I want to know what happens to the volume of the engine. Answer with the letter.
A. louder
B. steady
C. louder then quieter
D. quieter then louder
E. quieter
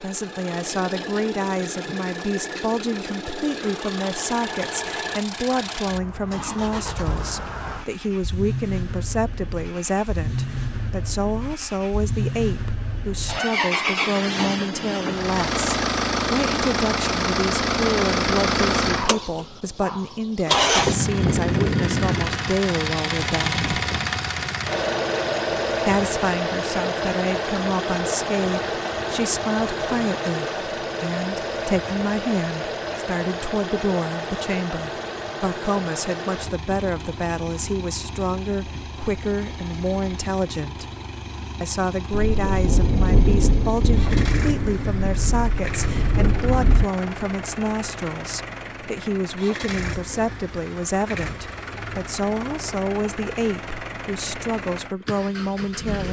C.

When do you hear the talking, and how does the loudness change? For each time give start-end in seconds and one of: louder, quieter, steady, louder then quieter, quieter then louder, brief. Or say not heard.
0.0-23.6 steady
25.8-40.9 steady
41.6-56.0 steady.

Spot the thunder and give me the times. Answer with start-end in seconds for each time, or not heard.
42.1-46.9.